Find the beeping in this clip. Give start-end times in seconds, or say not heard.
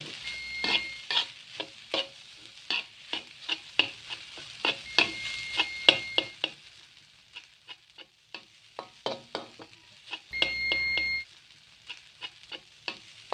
0.2-1.1, 4.8-6.3, 10.3-11.2.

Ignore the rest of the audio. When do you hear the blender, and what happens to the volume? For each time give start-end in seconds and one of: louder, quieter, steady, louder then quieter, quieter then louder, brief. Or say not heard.
not heard.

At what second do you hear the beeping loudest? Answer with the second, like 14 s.
11 s.